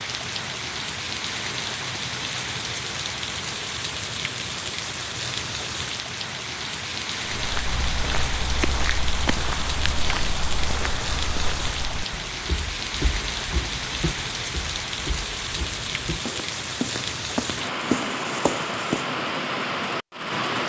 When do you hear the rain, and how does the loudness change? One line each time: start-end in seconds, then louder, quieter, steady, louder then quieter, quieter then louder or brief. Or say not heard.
0.0-20.6 steady.